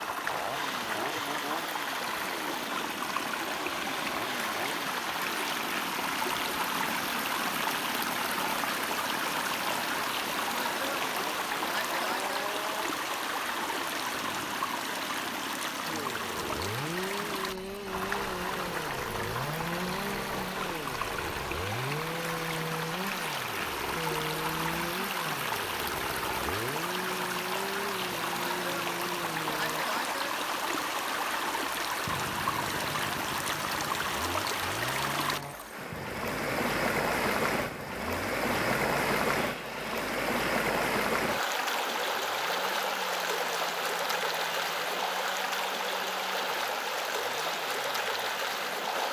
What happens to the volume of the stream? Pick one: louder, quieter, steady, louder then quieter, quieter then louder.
steady.